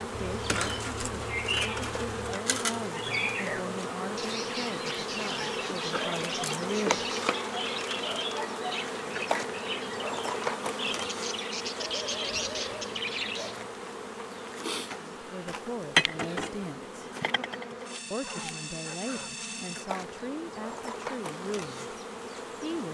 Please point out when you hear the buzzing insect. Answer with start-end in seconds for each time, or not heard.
0.0-22.9.